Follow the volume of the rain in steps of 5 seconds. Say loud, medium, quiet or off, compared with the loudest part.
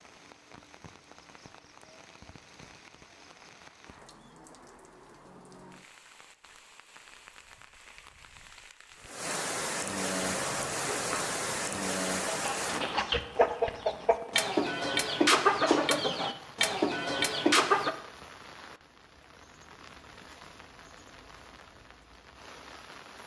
quiet, medium, loud, quiet, quiet.